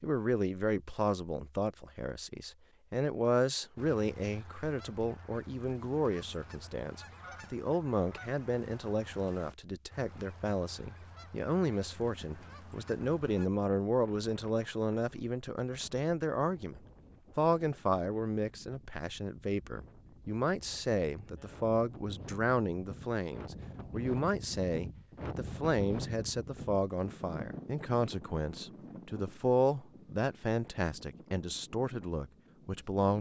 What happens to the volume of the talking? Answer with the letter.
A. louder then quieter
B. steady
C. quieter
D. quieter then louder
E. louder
B.